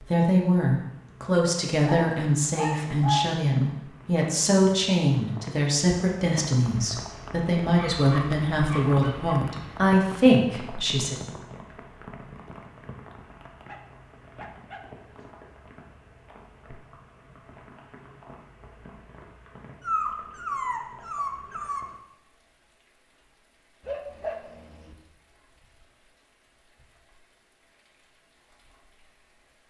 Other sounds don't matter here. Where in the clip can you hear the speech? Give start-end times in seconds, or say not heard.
0.1-11.2.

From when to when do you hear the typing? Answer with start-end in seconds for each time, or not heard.
not heard.